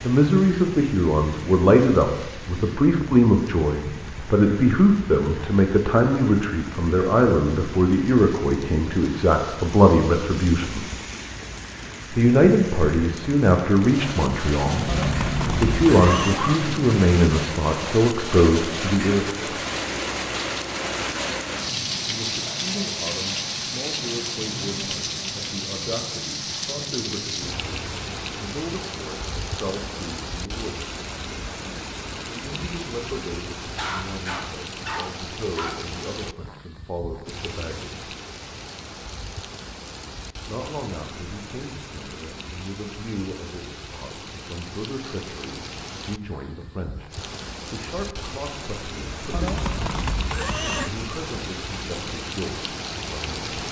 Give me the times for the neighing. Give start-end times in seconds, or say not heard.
14.8-16.4, 49.3-50.9.